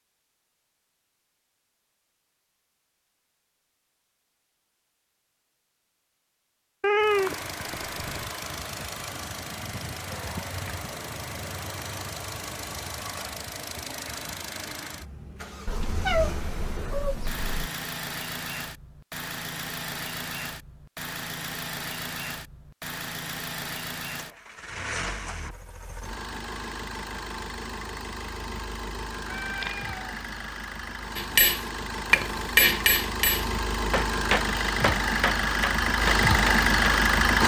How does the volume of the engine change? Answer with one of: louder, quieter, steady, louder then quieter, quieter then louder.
louder.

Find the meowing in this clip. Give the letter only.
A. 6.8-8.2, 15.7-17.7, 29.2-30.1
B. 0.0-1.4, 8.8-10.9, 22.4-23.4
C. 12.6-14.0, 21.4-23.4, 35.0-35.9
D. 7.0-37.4
A.